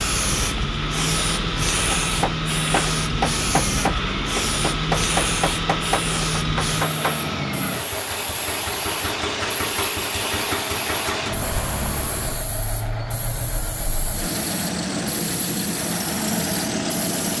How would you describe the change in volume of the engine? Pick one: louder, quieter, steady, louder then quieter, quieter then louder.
steady.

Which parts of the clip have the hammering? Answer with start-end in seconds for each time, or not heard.
1.9-7.2.